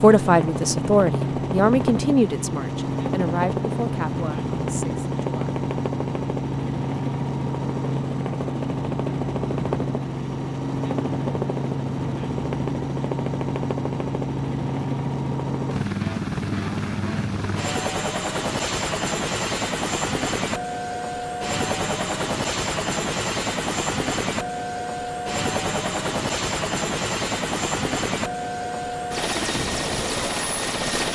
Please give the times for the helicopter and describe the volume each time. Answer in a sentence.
The helicopter can be heard from 0.0 to 31.0 s, at a steady volume.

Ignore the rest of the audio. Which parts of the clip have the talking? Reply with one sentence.
The talking can be heard from 0.0 to 5.5 s.